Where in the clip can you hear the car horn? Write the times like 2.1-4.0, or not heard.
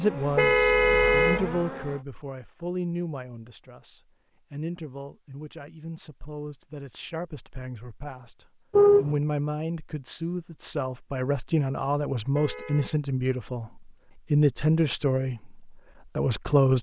0.3-1.4, 8.7-9.2, 12.3-12.9.